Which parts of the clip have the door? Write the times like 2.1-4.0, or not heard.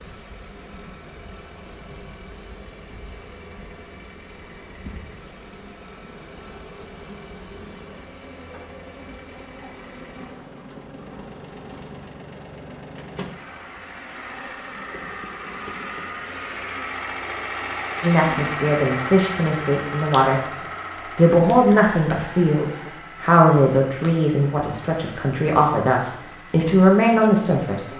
not heard.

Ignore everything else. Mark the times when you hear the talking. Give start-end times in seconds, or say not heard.
18.0-20.4, 21.1-27.9.